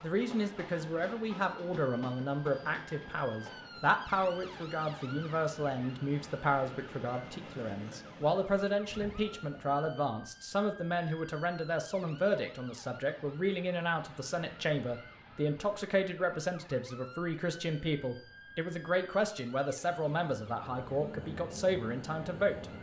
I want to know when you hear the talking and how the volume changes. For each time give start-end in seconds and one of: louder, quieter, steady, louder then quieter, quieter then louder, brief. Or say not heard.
0.0-22.6 steady.